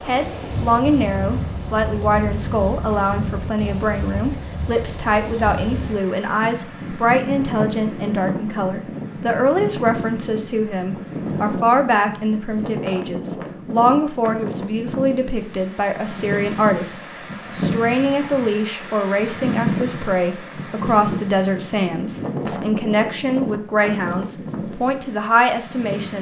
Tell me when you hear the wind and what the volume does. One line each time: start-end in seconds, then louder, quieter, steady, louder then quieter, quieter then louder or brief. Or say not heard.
0.0-26.1 steady.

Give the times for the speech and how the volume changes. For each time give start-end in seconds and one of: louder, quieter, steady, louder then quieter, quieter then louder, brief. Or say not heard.
0.0-26.1 steady.